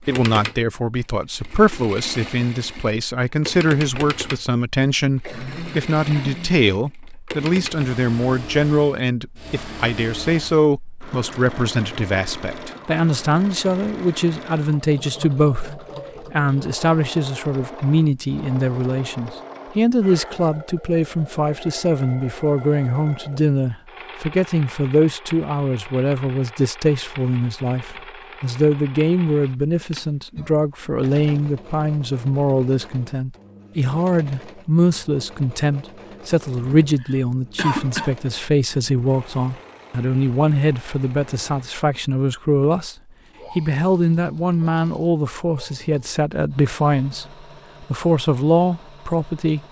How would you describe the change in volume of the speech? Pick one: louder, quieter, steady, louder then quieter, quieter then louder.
steady.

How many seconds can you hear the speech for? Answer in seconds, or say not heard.
49 s.